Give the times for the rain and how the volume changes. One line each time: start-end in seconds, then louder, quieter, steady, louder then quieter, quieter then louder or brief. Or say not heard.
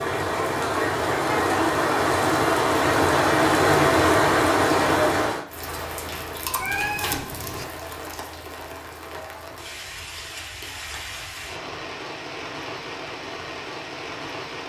0.0-14.6 quieter.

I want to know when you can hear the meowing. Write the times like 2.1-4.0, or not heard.
6.5-7.7.